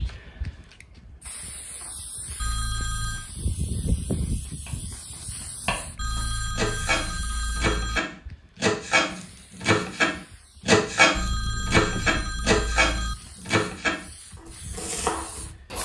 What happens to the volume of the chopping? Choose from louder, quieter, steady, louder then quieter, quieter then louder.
louder then quieter.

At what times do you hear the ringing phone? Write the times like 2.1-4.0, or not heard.
2.4-3.3, 6.0-8.0, 11.2-13.2.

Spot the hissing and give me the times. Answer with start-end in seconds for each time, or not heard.
0.0-15.8.